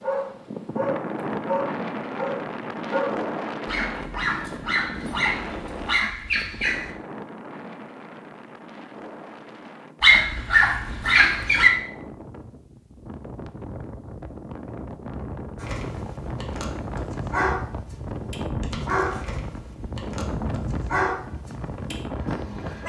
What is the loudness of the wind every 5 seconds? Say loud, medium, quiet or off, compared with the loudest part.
loud, medium, medium, loud, loud.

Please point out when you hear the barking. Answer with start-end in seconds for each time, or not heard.
0.0-6.9, 10.0-11.7, 15.6-22.8.